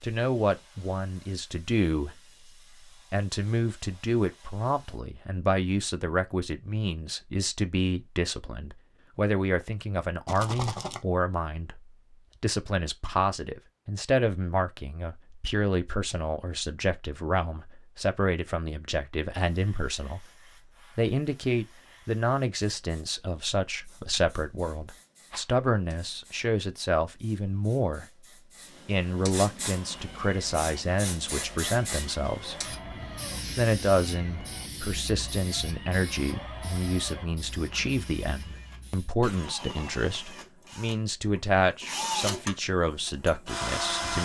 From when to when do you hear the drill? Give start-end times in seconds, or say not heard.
29.6-44.2.